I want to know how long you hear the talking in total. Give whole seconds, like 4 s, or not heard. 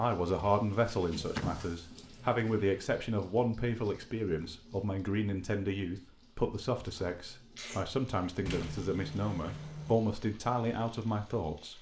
12 s.